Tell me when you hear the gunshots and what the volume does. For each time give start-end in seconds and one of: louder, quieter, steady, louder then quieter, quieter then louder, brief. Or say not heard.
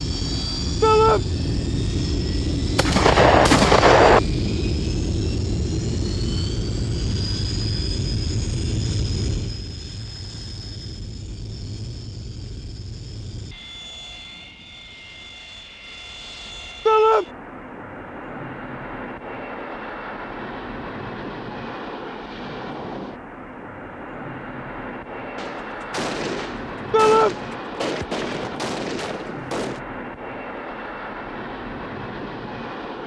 2.8-4.2 brief
25.4-29.8 steady.